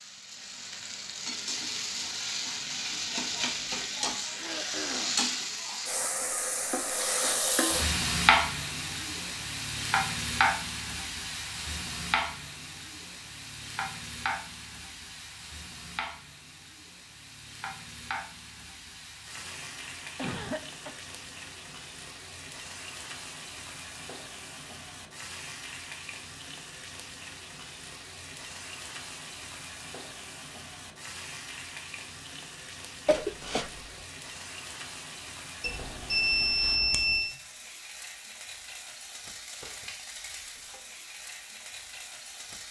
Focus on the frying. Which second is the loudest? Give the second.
8 s.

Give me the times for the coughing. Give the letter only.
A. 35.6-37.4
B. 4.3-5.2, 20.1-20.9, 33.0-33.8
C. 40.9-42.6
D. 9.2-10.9
B.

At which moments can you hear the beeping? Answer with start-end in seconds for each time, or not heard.
35.6-37.4.